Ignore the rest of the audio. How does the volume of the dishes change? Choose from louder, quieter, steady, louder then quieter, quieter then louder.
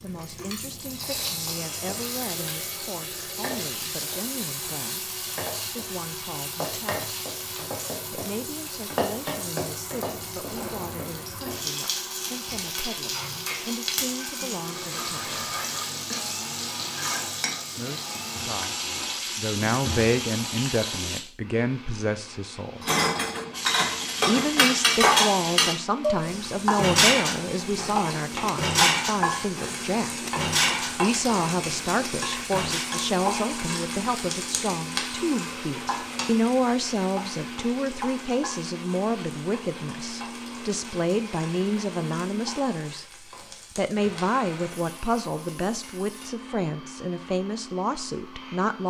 quieter.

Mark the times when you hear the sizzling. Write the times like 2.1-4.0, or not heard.
0.0-21.2, 23.5-46.3.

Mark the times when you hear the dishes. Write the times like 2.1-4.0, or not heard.
22.9-32.9.